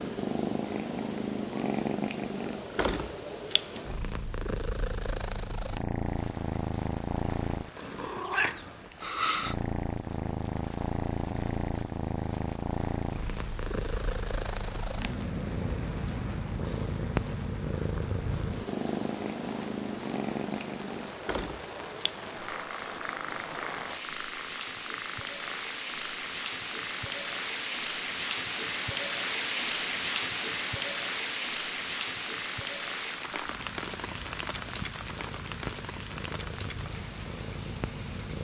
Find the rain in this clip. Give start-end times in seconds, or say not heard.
5.9-38.4.